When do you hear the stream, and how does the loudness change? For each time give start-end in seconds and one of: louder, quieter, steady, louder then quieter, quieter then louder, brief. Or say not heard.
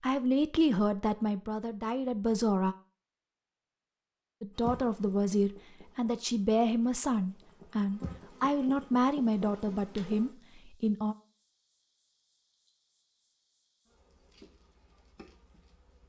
not heard.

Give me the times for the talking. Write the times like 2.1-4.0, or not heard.
0.0-2.8, 4.4-11.2.